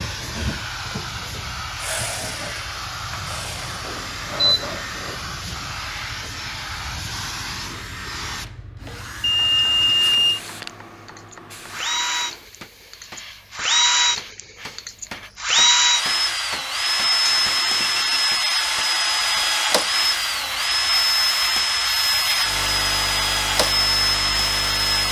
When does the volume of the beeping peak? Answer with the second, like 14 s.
10 s.